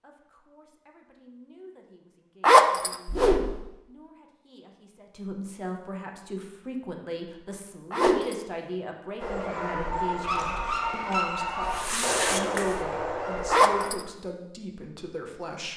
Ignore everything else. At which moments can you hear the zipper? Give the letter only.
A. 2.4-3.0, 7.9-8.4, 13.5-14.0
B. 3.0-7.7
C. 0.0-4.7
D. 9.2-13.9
A.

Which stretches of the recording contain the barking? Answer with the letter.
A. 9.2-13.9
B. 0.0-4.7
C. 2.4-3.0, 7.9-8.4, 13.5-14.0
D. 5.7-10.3
A.